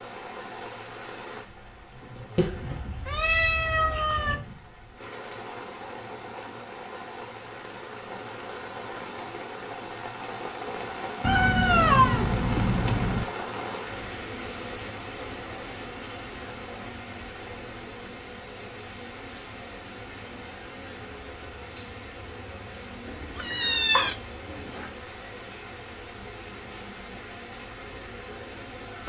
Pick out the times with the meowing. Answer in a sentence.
The meowing can be heard from 2.4 to 4.3 s, from 11.2 to 13.2 s and from 23.1 to 24.9 s.